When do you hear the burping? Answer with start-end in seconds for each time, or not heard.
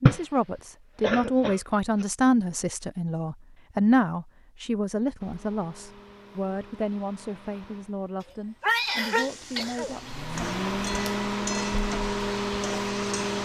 not heard.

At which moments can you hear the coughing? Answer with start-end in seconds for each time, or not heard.
1.0-1.6, 8.6-9.9.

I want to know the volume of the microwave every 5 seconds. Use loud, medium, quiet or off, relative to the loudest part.
off, quiet, loud.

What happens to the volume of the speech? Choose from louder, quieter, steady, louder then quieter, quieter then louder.
quieter.